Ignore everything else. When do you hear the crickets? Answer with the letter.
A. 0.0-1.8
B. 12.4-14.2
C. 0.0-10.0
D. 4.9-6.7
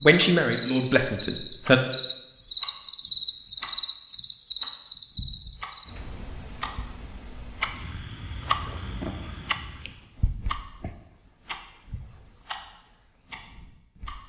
C.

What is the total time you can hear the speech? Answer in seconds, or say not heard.
2 s.